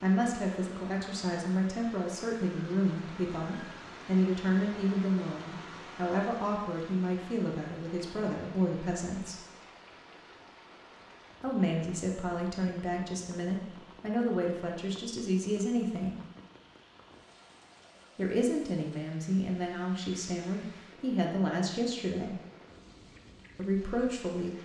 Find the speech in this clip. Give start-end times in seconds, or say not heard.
0.0-9.4, 11.4-16.1, 18.1-22.4, 23.6-24.6.